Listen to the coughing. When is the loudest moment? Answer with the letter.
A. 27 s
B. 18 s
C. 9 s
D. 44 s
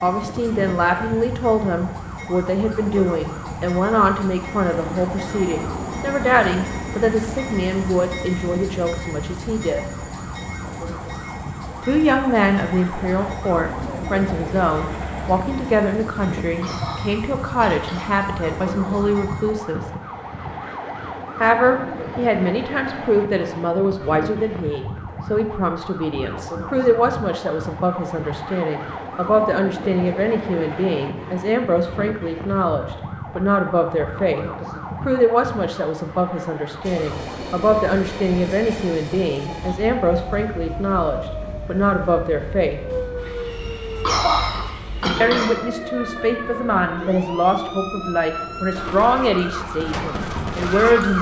D.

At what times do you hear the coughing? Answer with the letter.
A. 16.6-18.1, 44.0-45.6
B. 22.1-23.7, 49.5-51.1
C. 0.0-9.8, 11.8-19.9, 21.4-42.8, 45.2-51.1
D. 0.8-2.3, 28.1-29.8
A.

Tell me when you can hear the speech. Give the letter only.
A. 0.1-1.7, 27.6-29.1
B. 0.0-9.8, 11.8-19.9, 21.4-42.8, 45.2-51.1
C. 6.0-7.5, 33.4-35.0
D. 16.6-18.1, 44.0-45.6
B.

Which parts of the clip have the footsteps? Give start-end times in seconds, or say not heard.
not heard.